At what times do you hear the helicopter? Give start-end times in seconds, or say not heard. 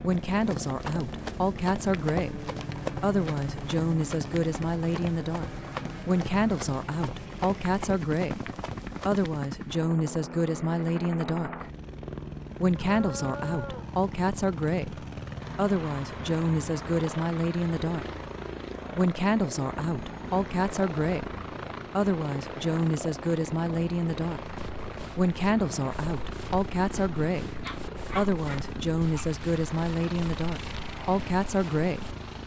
0.0-32.4.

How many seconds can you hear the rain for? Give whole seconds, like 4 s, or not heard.
not heard.